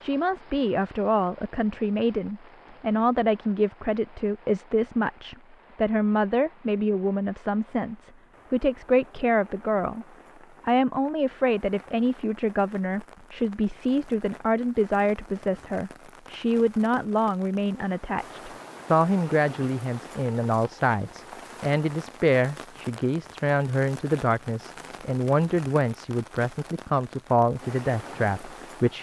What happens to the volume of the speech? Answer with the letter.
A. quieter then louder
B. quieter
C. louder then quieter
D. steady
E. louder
D.